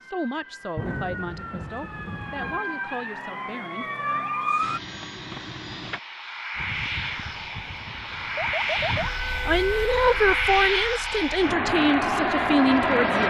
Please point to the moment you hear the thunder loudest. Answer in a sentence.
The loudest moment of the thunder is at 1 second.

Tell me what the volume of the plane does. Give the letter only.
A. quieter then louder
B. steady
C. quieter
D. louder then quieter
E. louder
E.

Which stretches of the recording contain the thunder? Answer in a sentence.
The thunder can be heard from 0.8 to 2.6 s.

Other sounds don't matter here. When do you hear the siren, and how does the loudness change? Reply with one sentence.
The siren can be heard from 0.0 to 4.8 s, getting louder; and from 6.5 to 11.5 s, getting louder then quieter.